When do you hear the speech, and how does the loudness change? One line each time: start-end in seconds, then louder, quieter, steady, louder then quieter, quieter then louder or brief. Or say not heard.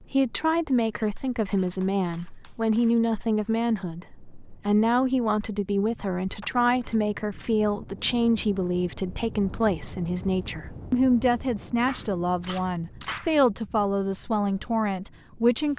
0.1-15.7 steady.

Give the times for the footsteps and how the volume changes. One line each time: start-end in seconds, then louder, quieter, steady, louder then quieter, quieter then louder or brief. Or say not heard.
not heard.